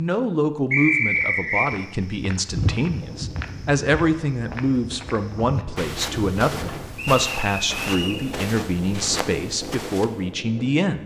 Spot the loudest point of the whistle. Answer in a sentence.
The loudest moment of the whistle is at 1 second.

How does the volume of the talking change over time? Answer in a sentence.
The loudness of the talking stays about the same.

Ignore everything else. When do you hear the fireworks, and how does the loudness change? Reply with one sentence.
You can't hear the fireworks here.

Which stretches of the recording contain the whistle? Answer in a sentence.
The whistle can be heard from 0.7 to 1.7 s and from 7.0 to 8.2 s.